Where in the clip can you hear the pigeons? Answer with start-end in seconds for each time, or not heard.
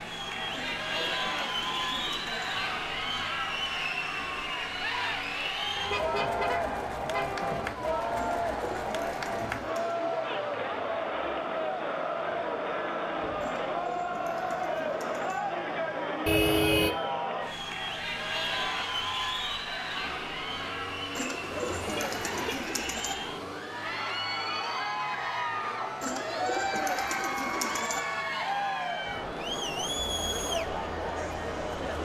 0.5-2.5, 8.2-10.0, 13.4-15.4, 21.1-23.1, 26.0-28.0.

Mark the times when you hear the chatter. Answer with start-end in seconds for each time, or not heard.
0.0-32.0.